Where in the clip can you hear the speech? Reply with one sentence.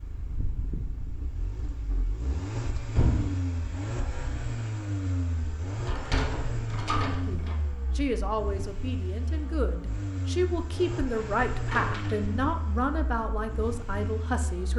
The speech can be heard from 7.0 to 14.7 s.